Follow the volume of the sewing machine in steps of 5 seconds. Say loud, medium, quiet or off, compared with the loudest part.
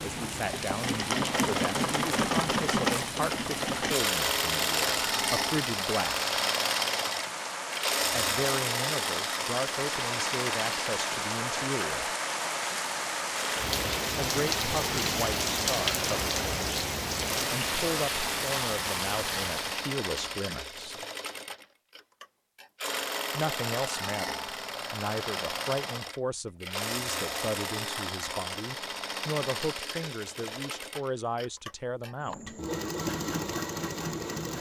loud, loud, medium, medium, medium, medium, medium.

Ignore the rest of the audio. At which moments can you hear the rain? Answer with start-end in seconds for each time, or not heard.
0.0-19.9.